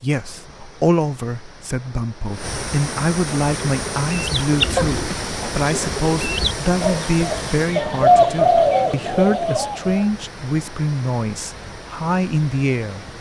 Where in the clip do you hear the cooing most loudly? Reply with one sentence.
The volume of the cooing peaks at 8 seconds.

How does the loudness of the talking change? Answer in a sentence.
The volume of the talking stays about the same.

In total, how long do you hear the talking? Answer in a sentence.
The talking can be heard for 13 seconds in total.